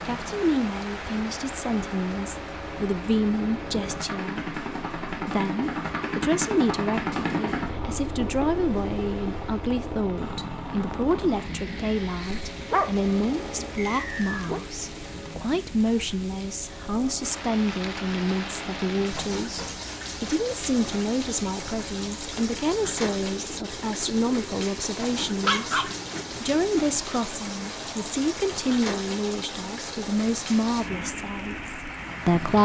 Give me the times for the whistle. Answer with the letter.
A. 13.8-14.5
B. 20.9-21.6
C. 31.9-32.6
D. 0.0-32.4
A.